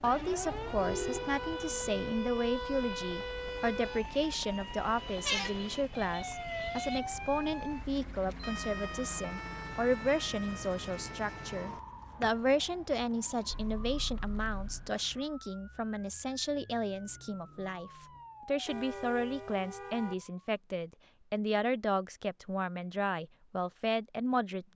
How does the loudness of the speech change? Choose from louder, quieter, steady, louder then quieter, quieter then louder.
steady.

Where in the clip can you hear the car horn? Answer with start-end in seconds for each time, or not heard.
0.6-2.1, 13.5-14.9, 18.6-20.1.